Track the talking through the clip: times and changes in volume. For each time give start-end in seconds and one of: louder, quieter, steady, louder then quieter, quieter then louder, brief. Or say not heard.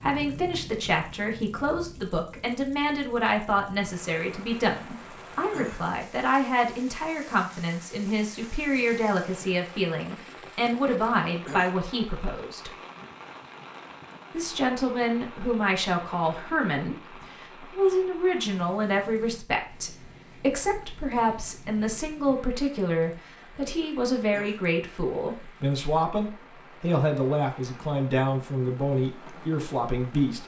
0.0-12.7 steady
14.3-30.4 steady.